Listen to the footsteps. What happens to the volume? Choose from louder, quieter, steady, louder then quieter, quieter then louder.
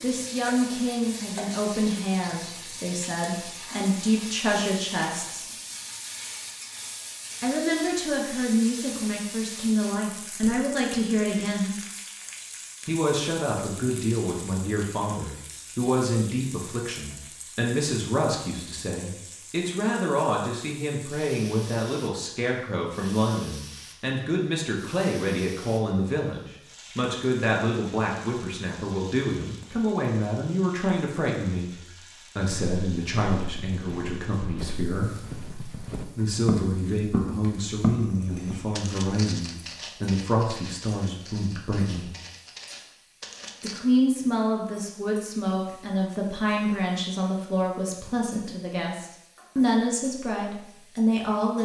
louder then quieter.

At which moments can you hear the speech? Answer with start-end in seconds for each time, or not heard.
0.0-5.5, 7.4-11.8, 12.8-31.8, 32.4-35.1, 36.1-42.1, 43.6-51.6.